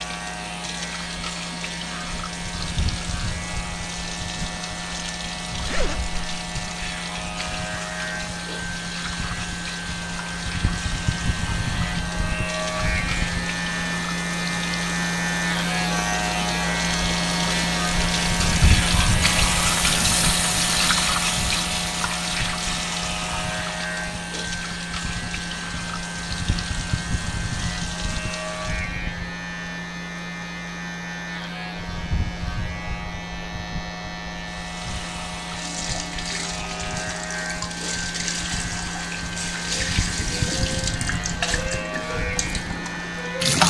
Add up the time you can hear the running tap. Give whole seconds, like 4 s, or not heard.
38 s.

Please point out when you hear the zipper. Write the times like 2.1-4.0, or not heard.
5.6-6.4.